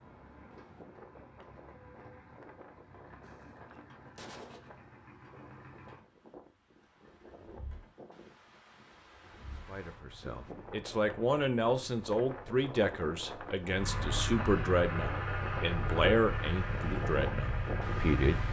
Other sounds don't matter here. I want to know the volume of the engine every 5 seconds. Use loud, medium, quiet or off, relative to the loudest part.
quiet, quiet, loud, loud.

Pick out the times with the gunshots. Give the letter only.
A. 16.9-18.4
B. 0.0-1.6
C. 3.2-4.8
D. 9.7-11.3
C.